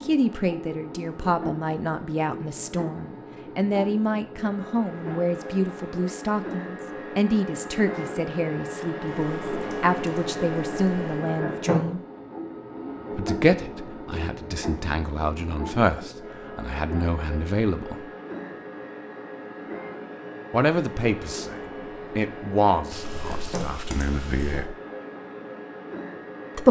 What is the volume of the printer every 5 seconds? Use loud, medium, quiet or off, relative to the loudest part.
medium, loud, loud, medium, medium, medium.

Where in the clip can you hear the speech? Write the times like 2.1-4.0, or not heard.
0.0-12.0, 13.1-18.1, 20.5-24.8.